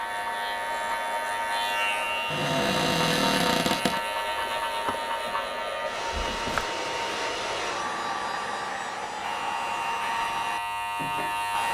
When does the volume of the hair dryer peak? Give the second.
8 s.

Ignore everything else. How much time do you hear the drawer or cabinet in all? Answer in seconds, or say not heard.
2 s.